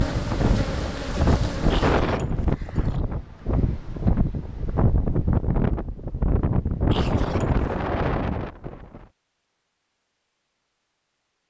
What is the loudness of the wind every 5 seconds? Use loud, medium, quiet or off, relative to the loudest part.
loud, loud, off.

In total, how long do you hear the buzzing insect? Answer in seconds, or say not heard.
2 s.